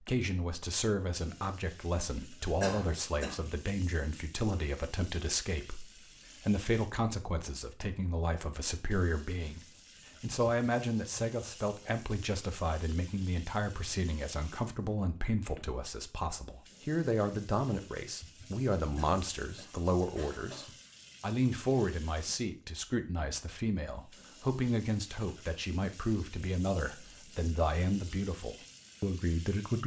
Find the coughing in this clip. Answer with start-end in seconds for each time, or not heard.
2.6-3.4, 18.9-20.8.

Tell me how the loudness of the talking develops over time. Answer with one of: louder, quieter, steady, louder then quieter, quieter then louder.
steady.